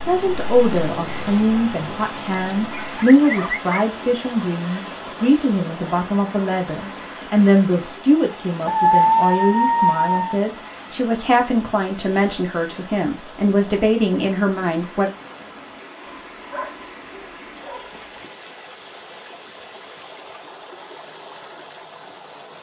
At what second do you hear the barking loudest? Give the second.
9 s.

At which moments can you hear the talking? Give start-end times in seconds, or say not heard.
0.1-15.1.